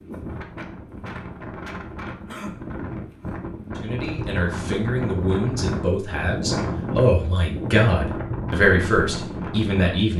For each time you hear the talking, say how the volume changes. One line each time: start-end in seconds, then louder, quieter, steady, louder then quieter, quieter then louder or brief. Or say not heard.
3.8-10.1 louder.